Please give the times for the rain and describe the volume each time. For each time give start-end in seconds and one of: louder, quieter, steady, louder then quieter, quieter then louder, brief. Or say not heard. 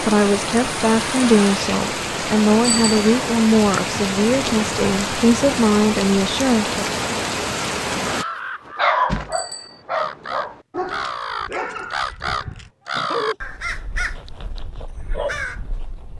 0.0-8.2 steady.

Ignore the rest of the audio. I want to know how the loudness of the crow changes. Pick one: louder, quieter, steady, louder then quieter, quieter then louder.
louder then quieter.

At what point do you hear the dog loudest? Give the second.
9 s.